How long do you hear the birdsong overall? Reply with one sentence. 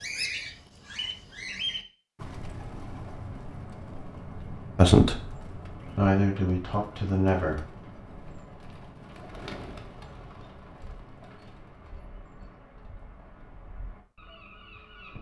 The birdsong can be heard for 15 seconds in total.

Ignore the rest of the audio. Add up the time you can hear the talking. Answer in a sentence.
The talking can be heard for 3 seconds in total.